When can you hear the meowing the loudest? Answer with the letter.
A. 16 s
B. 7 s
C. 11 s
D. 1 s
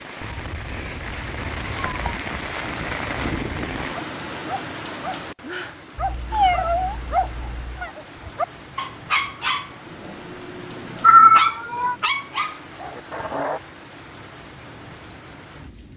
C.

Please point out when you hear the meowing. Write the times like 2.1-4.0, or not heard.
0.2-2.2, 6.0-7.9, 11.0-11.9.